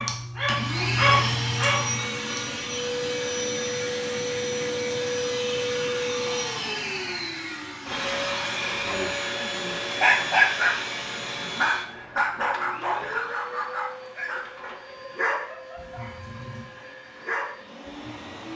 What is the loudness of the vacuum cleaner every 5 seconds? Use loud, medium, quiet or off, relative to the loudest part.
loud, loud, medium, quiet.